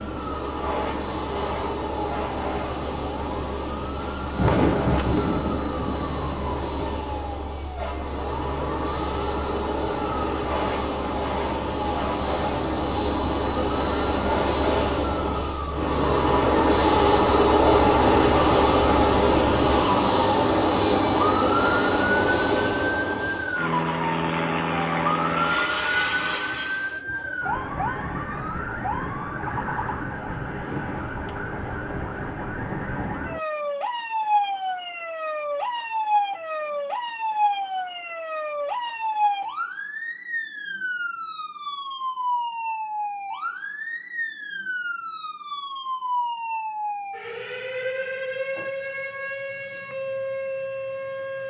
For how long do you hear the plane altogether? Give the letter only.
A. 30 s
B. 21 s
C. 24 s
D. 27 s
D.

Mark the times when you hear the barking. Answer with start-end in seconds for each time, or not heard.
not heard.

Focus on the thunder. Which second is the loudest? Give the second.
5 s.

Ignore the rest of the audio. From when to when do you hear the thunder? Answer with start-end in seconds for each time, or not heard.
4.2-7.0.